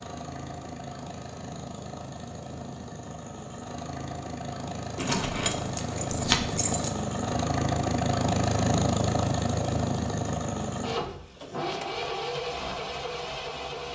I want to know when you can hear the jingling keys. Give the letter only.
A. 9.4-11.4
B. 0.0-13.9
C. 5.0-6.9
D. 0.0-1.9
C.